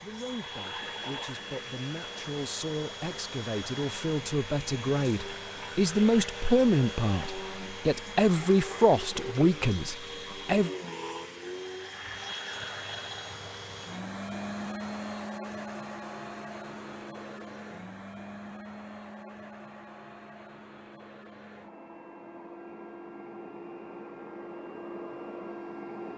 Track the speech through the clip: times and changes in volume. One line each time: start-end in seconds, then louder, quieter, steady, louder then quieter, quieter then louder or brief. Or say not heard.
0.0-10.7 louder.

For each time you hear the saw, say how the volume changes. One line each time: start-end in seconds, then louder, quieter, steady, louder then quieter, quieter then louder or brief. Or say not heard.
not heard.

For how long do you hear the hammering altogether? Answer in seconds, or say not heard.
not heard.